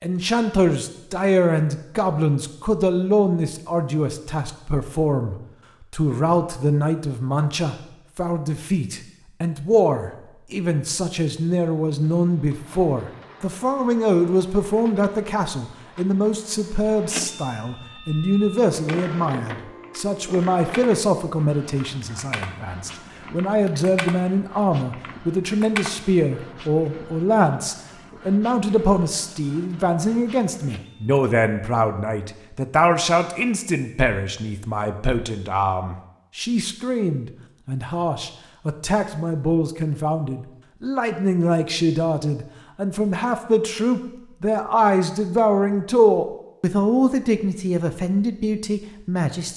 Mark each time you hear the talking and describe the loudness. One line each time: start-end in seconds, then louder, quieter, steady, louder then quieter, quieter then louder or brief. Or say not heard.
0.0-49.5 steady.